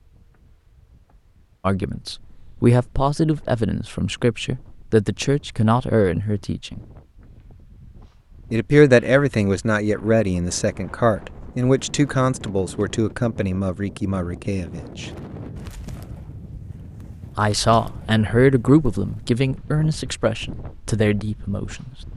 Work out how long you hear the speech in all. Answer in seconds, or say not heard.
16 s.